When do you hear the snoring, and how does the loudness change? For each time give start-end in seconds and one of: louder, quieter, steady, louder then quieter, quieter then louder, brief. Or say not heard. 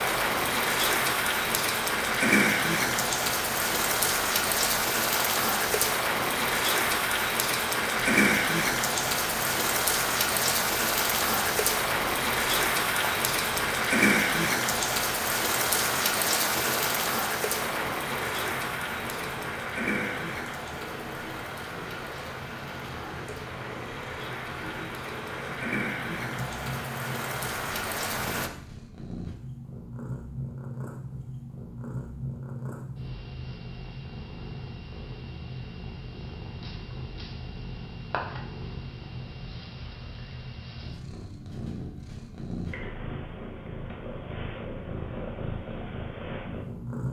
not heard.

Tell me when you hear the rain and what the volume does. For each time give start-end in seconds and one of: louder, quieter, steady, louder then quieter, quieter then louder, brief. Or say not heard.
0.0-28.5 quieter.